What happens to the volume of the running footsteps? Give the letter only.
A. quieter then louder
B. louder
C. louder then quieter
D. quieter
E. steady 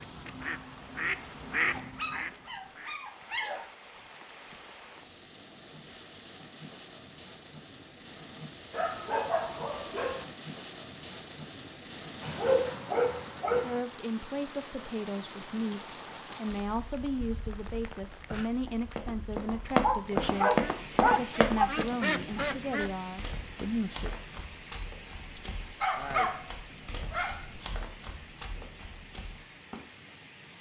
D.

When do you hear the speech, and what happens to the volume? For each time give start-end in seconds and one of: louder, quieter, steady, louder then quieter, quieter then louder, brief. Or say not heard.
13.5-24.1 steady.